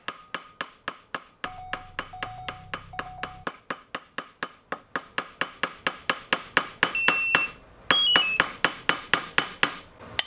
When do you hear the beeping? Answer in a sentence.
You can hear the beeping from 1.4 to 3.5 s and from 6.9 to 8.4 s.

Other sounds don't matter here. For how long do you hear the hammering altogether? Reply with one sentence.
You can hear the hammering for 10 seconds altogether.